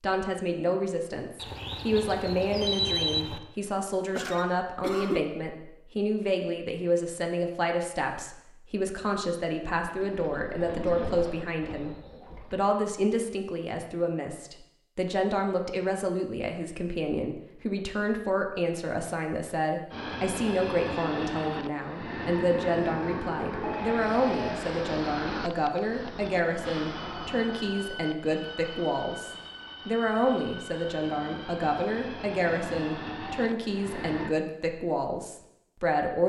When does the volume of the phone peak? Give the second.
3 s.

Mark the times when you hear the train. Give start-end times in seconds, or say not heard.
19.9-34.4.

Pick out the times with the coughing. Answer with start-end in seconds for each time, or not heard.
4.1-5.2.